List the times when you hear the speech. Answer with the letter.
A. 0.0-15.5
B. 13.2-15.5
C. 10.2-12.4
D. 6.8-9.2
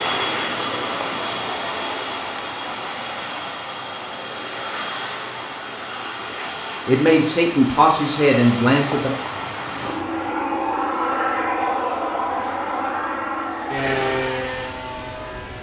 D.